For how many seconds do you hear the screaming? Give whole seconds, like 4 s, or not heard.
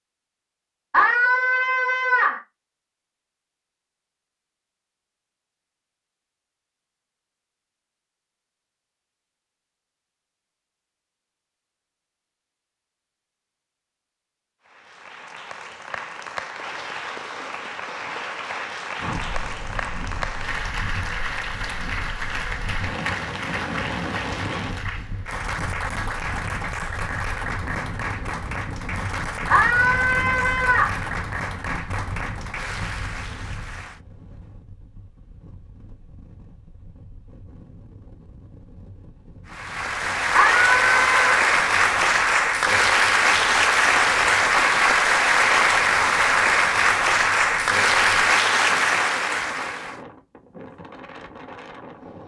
4 s.